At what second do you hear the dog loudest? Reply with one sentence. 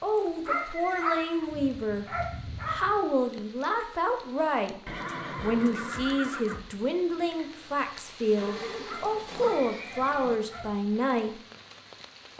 The volume of the dog peaks at 1 second.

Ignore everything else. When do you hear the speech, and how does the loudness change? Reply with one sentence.
You can hear the speech from 0.0 to 11.4 s, at a steady volume.